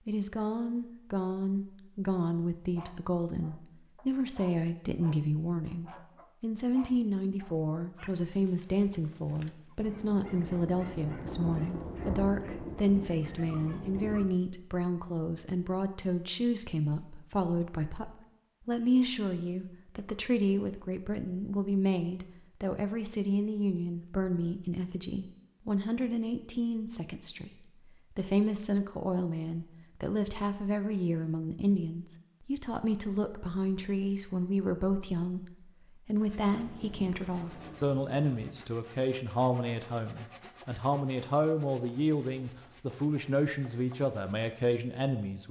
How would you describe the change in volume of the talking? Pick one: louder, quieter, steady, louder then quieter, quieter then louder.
steady.